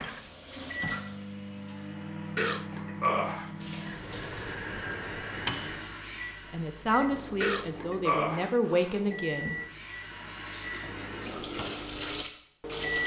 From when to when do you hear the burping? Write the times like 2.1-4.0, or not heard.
2.4-3.5, 7.4-9.0.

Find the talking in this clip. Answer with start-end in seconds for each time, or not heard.
6.5-9.6.